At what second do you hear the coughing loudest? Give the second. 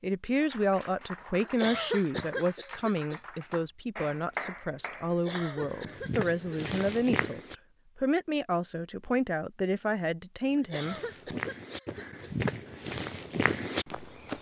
2 s.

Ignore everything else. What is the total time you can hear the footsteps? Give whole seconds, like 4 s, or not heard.
6 s.